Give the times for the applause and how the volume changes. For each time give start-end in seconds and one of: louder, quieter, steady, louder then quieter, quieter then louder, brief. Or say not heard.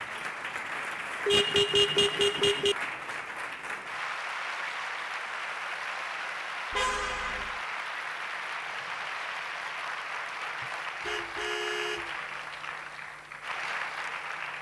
0.0-14.5 steady.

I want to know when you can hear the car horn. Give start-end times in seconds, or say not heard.
1.2-2.8, 6.7-7.6, 10.6-12.2.